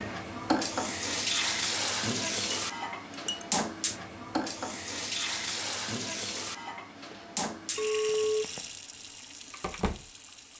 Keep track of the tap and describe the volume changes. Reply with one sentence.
The loudness of the tap goes down.